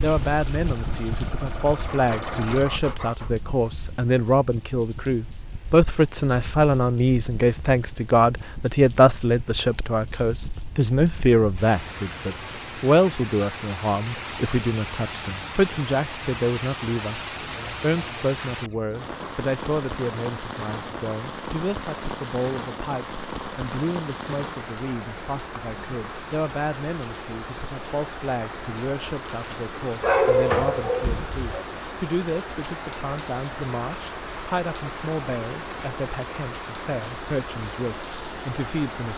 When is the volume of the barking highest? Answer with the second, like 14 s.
30 s.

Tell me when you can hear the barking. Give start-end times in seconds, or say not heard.
1.9-3.3, 30.0-31.6.